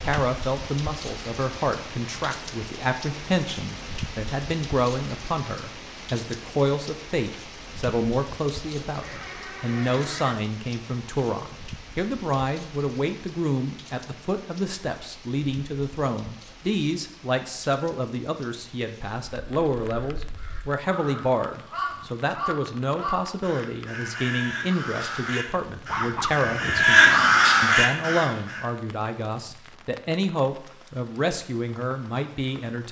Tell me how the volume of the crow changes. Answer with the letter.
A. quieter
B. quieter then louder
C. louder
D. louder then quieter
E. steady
C.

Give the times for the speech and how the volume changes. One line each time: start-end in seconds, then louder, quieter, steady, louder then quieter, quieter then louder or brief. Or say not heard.
0.0-32.8 steady.